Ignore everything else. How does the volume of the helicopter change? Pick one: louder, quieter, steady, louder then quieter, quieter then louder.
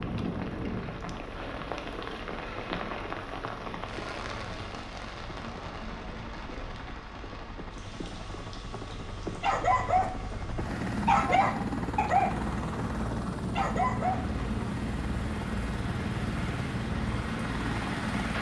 louder.